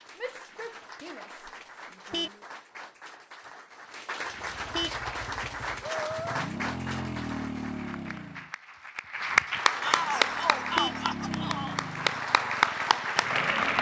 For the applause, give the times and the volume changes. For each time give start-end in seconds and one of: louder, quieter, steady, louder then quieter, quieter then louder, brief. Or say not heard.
0.0-13.7 louder.